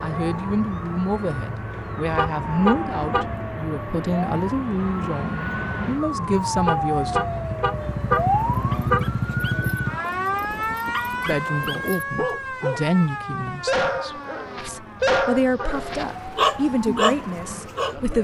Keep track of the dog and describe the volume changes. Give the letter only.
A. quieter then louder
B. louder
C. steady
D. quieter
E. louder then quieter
B.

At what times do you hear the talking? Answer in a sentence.
The talking can be heard from 0.0 to 7.2 s and from 11.2 to 18.1 s.